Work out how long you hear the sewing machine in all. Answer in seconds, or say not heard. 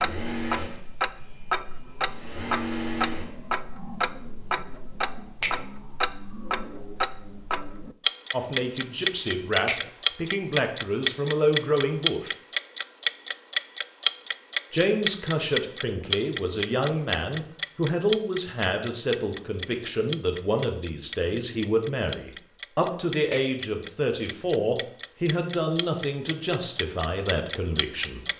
3 s.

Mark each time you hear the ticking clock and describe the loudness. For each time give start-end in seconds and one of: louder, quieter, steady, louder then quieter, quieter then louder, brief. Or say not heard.
0.0-28.3 louder then quieter.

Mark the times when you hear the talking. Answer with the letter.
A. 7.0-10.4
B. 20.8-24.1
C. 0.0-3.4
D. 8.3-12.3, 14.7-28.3
D.